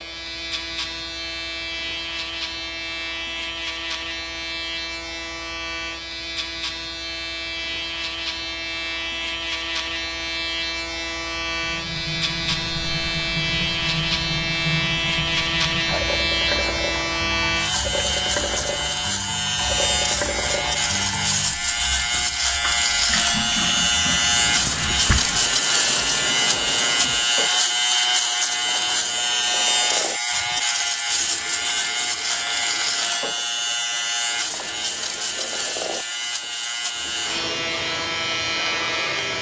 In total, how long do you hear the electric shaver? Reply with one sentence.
You can hear the electric shaver for 39 seconds altogether.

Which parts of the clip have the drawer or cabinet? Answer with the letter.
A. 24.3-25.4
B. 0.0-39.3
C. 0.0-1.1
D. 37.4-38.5
A.